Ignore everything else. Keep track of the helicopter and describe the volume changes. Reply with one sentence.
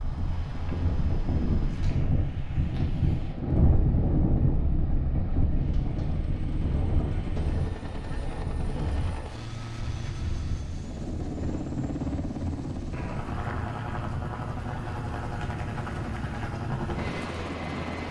The loudness of the helicopter goes up.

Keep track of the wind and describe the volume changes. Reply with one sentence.
The loudness of the wind goes down.